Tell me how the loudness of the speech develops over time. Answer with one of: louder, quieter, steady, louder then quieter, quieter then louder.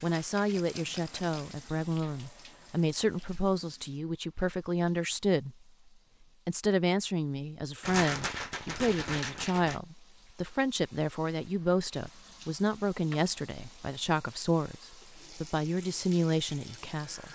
steady.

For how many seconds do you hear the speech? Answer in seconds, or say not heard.
16 s.